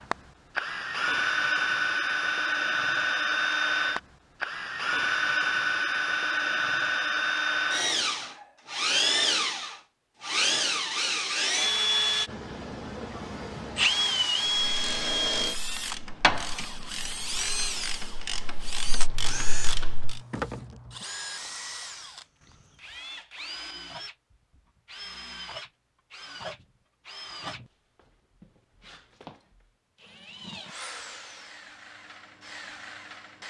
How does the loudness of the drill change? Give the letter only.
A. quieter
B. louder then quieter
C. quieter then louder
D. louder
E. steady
A.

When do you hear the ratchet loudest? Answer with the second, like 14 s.
16 s.